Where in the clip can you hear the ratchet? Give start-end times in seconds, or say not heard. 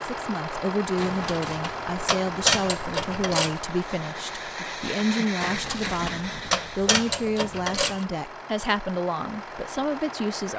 0.9-3.6, 5.4-8.1.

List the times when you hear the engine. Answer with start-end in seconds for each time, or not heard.
0.0-10.5.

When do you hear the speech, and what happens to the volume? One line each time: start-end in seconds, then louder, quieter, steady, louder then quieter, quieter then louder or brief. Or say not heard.
0.0-10.5 steady.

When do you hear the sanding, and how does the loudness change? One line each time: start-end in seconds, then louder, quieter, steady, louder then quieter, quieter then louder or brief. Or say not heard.
not heard.